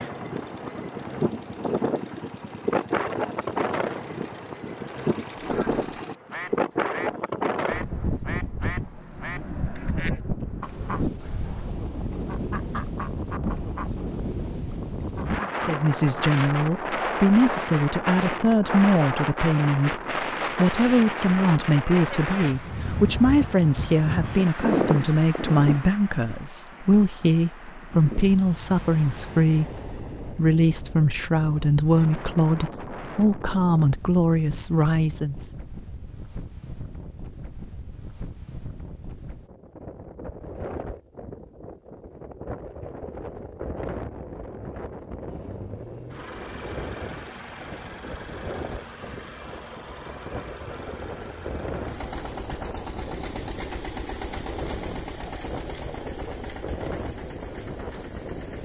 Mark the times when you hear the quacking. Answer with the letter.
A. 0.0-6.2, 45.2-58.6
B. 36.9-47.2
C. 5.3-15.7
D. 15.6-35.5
C.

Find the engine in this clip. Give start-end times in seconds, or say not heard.
0.0-6.2, 45.2-58.6.